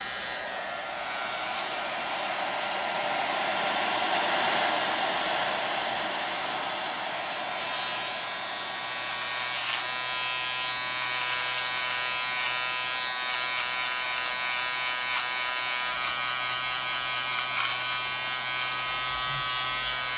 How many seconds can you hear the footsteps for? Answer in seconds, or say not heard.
not heard.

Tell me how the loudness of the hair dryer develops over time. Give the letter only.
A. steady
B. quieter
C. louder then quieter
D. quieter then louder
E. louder
B.